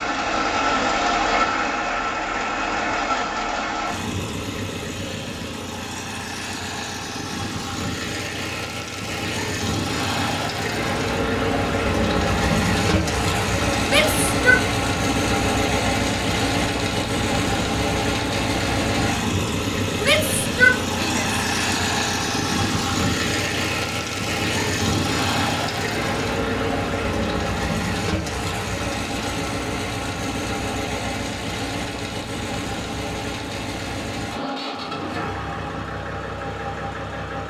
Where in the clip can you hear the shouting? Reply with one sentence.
The shouting can be heard from 13.8 to 14.6 s and from 20.0 to 21.4 s.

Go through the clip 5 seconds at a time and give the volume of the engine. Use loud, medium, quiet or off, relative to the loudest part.
loud, medium, loud, loud, loud, loud, medium, medium.